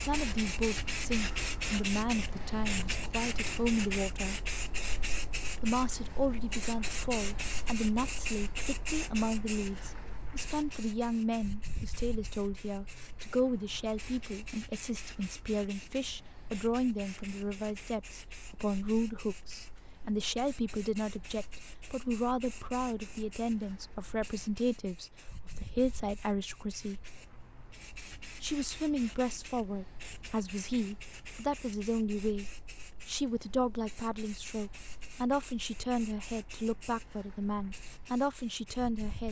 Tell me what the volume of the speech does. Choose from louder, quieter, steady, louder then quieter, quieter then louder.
steady.